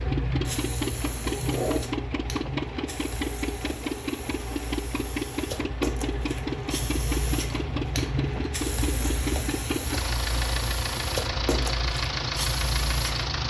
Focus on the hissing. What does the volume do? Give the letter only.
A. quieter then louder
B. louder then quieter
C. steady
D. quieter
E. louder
A.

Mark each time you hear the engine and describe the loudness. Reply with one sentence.
You can hear the engine from 0.0 to 13.4 s, at a steady volume.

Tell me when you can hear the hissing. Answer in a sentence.
The hissing can be heard from 0.0 to 13.4 s.